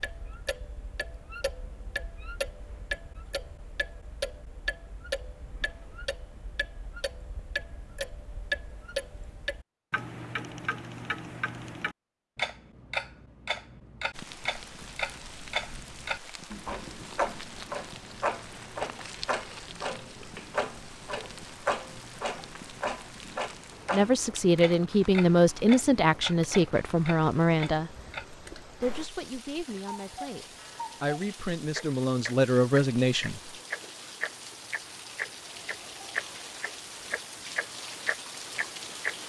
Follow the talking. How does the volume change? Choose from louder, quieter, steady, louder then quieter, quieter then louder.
quieter then louder.